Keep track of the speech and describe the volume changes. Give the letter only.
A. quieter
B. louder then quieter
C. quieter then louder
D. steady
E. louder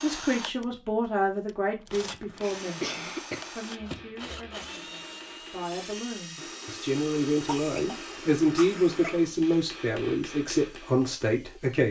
C.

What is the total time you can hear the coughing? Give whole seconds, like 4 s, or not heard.
3 s.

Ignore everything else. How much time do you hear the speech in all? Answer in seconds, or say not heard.
12 s.